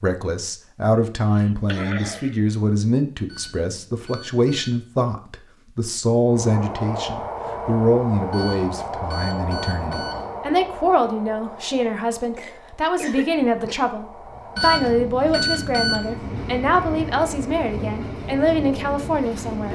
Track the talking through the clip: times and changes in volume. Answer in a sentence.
The talking can be heard from 0.0 to 19.7 s, at a steady volume.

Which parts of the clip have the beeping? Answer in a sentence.
You can hear the beeping from 3.2 to 4.8 s, from 8.3 to 10.3 s and from 14.6 to 16.1 s.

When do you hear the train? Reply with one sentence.
You can hear the train from 6.2 to 19.7 s.